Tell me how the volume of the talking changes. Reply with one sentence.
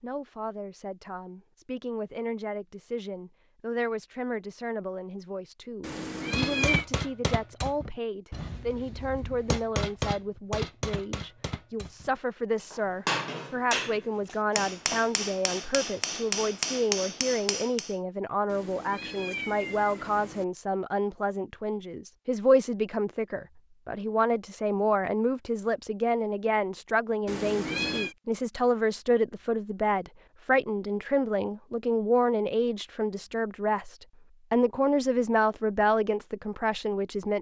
The loudness of the talking goes up.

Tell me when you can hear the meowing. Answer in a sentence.
You can hear the meowing from 5.8 to 6.8 s, from 18.4 to 20.4 s and from 27.2 to 28.1 s.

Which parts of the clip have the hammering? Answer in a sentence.
You can hear the hammering from 6.3 to 17.9 s.